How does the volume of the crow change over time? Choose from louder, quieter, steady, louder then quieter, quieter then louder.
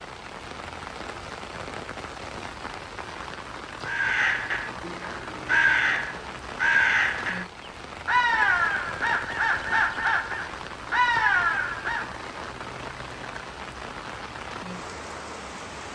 steady.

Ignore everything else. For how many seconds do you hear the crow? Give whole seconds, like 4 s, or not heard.
8 s.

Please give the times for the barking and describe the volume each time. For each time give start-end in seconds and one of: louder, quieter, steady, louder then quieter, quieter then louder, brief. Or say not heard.
not heard.